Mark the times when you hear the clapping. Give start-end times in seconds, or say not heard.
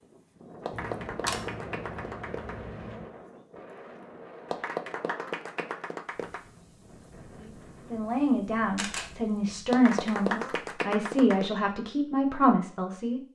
0.6-2.5, 4.5-6.5, 9.7-11.5.